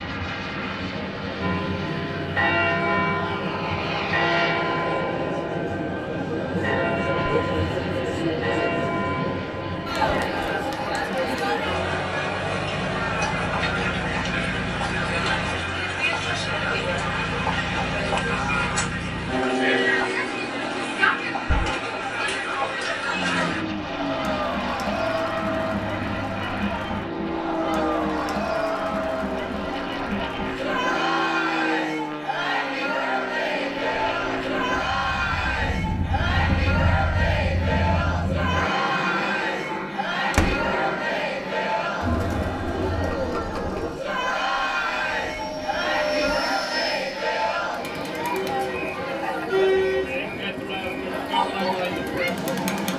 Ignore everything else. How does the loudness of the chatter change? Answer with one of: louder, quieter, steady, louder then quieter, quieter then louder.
steady.